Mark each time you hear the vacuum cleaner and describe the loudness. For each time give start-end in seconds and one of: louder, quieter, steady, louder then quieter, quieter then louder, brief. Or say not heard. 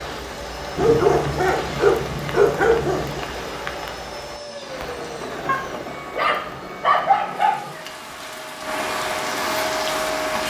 0.0-10.4 louder.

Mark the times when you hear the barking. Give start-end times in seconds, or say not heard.
0.8-3.2, 5.5-7.6.